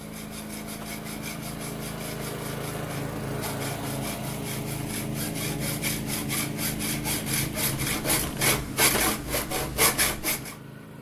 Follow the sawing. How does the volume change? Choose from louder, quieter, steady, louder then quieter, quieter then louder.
louder.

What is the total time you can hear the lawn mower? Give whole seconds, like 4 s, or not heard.
11 s.